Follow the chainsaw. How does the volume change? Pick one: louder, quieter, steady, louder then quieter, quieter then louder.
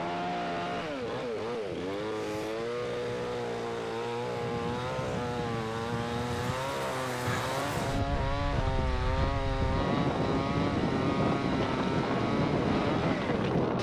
steady.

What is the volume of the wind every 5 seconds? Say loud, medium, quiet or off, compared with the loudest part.
quiet, medium, loud.